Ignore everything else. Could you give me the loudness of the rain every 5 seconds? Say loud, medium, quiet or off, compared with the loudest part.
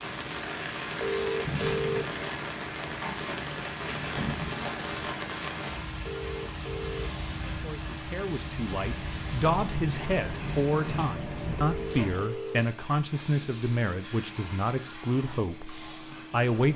loud, loud, loud, off.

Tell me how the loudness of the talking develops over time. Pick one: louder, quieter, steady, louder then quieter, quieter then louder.
steady.